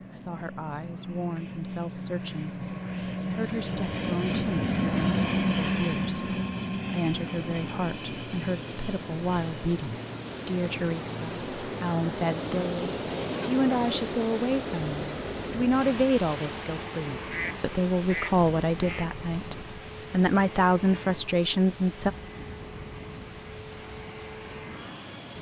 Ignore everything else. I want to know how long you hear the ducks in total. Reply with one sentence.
The ducks can be heard for 2 seconds in total.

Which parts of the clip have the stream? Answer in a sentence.
You can hear the stream from 7.1 to 25.3 s.